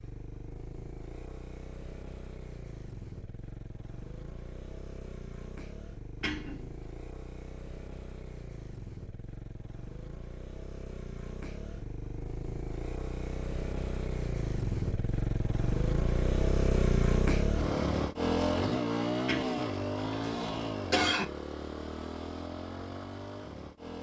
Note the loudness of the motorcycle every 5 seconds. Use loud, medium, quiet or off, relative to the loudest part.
quiet, quiet, medium, loud, medium.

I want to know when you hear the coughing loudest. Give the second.
21 s.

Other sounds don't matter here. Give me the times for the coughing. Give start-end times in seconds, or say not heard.
6.2-6.8, 19.2-21.2.